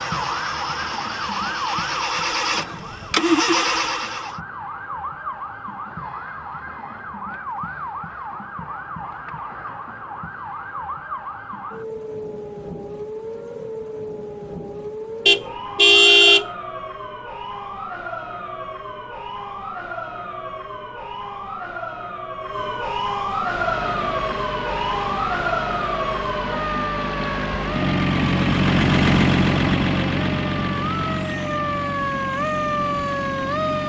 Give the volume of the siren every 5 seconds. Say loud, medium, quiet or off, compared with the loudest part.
medium, medium, medium, medium, loud, loud, loud.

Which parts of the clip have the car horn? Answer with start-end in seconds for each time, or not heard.
15.2-16.4.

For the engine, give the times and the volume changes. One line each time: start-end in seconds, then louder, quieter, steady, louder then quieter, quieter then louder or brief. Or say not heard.
0.0-4.4 louder
23.4-33.8 louder then quieter.